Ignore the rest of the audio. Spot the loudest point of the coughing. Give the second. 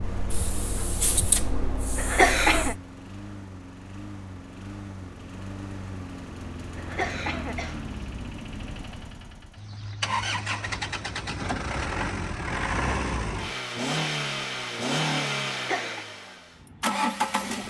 2 s.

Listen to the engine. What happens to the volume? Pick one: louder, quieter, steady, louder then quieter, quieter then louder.
louder.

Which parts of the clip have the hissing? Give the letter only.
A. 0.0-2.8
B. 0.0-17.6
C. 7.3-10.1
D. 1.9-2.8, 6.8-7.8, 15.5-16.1
A.